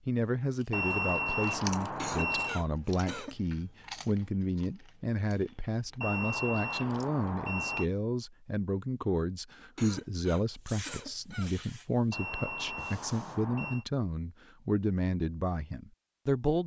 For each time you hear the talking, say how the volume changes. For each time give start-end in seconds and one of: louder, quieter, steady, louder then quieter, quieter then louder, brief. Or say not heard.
0.1-16.6 steady.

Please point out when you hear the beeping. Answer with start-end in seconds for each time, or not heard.
0.7-2.6, 6.0-7.9, 12.1-13.8.